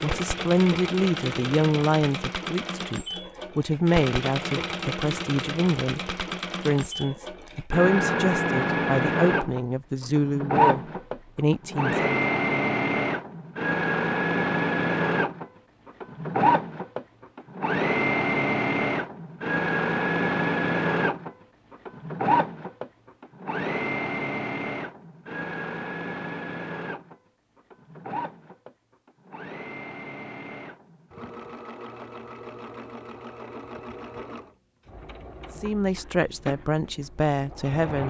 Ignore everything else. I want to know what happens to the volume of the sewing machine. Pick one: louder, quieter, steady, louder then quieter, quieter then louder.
louder then quieter.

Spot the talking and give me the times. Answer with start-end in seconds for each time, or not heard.
0.0-6.0, 6.7-12.2, 35.5-38.0.